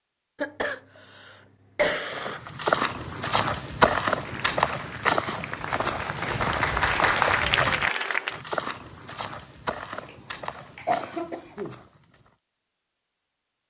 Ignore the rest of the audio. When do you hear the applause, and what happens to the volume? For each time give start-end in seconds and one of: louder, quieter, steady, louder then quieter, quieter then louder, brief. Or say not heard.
4.2-8.4 louder.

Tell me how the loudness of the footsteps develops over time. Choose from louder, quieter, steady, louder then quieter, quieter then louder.
quieter.